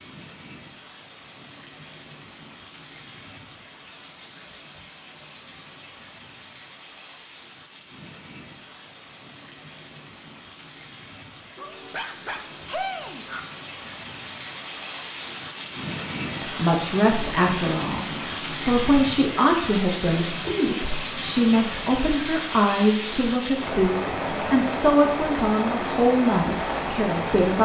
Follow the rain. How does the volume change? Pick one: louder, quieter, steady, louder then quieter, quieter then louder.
louder.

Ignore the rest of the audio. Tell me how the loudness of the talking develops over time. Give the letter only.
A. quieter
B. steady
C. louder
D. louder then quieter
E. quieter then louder
B.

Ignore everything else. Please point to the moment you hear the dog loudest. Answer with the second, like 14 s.
13 s.